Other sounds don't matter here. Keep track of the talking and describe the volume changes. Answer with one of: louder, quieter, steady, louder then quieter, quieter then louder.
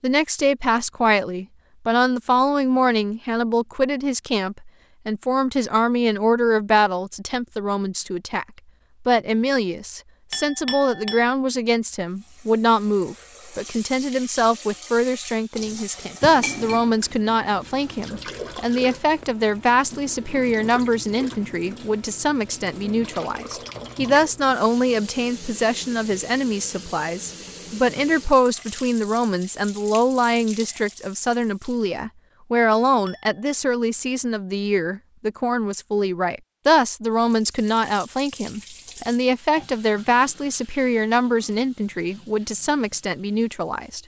steady.